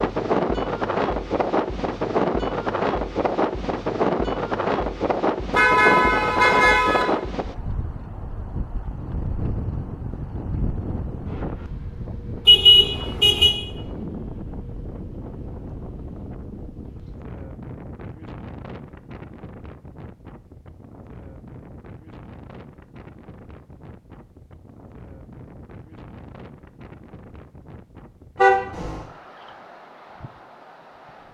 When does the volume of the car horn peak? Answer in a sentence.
The loudest moment of the car horn is at 13 seconds.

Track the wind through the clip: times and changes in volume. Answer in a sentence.
The wind can be heard from 0.0 to 31.2 s, getting quieter.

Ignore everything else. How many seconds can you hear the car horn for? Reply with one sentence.
The car horn can be heard for 3 seconds in total.